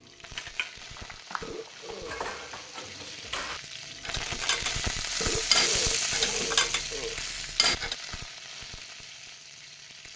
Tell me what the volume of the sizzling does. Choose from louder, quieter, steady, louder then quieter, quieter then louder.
louder then quieter.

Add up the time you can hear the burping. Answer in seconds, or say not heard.
3 s.